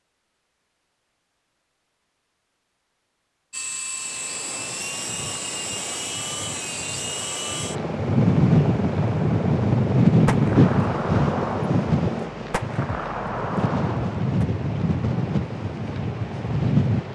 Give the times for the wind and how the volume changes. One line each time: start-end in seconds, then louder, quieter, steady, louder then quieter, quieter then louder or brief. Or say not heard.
4.3-17.1 louder then quieter.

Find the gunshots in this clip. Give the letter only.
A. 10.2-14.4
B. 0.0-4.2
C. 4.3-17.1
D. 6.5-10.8
A.